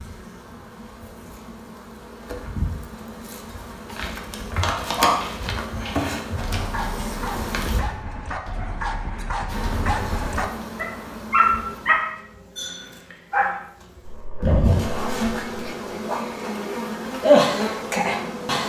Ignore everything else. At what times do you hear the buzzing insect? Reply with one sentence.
The buzzing insect can be heard from 0.0 to 7.8 s and from 9.5 to 18.6 s.